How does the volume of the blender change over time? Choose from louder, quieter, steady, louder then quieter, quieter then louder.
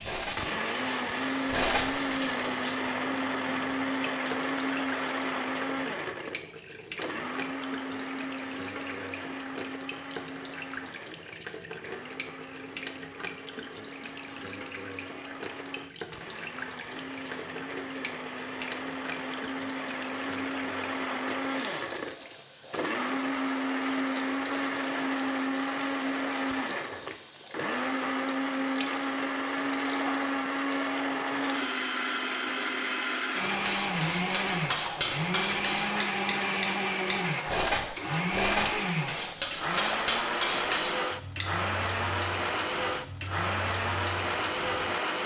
quieter then louder.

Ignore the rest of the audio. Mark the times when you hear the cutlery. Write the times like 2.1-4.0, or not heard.
0.0-2.4, 33.4-41.5.